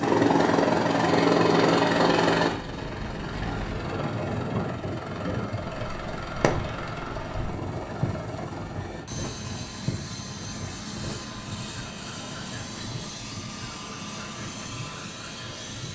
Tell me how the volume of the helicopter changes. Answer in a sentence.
The loudness of the helicopter goes down.